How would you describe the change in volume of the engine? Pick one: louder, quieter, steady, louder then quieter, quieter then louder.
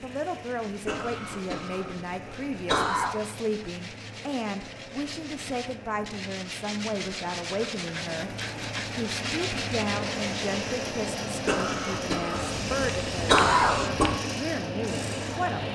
louder.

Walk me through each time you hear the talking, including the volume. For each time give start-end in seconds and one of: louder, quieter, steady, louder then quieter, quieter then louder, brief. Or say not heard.
0.0-15.6 steady.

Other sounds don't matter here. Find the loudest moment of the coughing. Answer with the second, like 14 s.
13 s.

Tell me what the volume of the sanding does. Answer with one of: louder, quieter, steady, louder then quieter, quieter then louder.
louder.